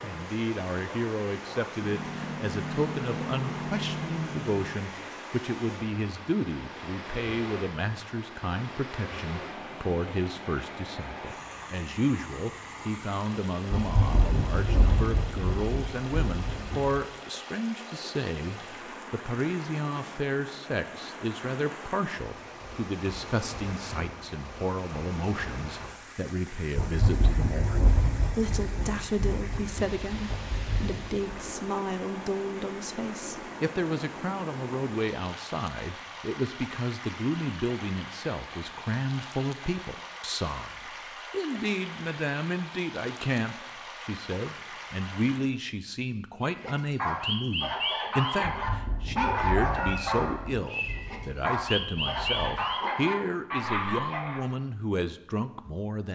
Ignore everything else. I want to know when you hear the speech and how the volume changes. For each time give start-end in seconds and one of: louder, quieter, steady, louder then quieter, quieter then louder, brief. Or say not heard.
0.0-56.0 steady.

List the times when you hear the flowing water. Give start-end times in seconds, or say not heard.
0.0-45.5.